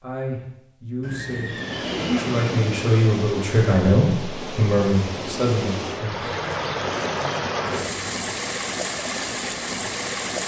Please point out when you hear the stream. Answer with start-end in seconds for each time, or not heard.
1.4-10.4.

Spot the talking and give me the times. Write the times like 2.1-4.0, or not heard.
0.0-6.3.